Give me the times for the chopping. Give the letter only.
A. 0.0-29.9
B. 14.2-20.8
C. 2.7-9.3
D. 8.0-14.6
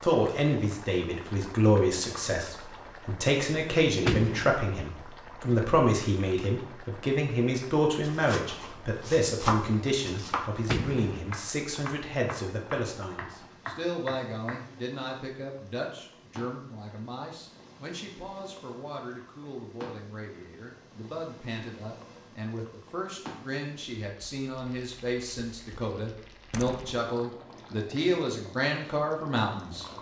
D.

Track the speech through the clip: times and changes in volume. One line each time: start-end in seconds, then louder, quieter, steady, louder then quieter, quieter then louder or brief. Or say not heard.
0.0-29.9 quieter then louder.